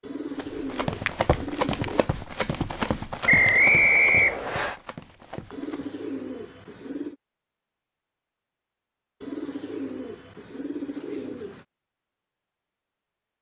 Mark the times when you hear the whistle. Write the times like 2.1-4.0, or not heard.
3.2-4.8.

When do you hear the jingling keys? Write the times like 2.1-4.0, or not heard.
not heard.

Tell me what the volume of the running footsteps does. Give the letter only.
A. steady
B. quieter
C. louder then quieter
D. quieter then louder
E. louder
B.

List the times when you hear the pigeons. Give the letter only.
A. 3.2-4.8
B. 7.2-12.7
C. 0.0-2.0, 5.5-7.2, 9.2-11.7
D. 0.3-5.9
C.